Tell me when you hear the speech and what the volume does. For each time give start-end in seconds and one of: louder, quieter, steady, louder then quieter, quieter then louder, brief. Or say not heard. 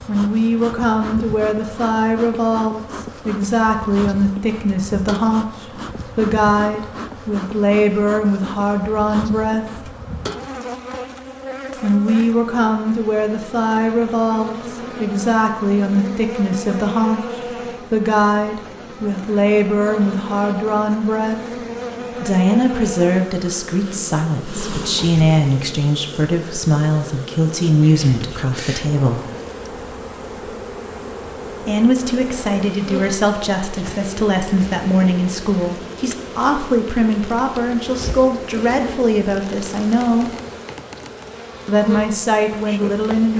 0.1-9.9 steady
11.8-29.2 steady
31.6-40.4 steady
41.6-43.3 brief.